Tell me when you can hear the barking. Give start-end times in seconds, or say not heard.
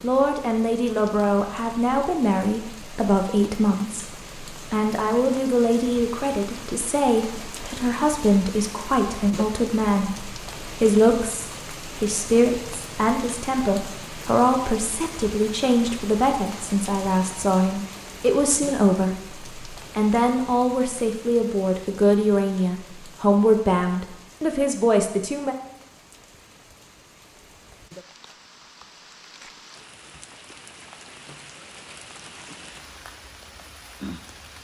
not heard.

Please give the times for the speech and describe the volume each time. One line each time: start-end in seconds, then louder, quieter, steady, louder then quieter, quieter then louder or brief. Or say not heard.
0.0-25.6 steady.